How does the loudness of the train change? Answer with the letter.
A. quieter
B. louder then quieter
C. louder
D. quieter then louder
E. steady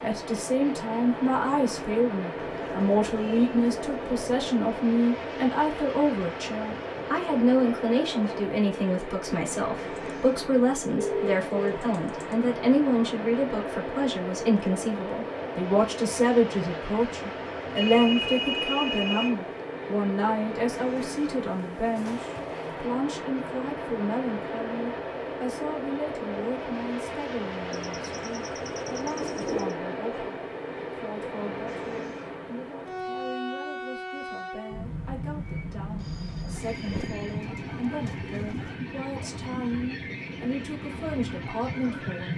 E.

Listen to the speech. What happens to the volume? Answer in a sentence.
The volume of the speech goes down.